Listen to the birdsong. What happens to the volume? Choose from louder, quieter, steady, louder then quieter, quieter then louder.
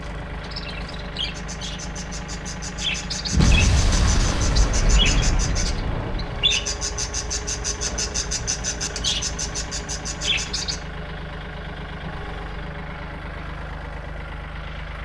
louder.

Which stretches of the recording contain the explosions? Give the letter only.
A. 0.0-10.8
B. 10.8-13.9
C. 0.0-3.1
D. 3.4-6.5
D.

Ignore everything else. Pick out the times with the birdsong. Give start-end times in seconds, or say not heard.
0.0-10.8.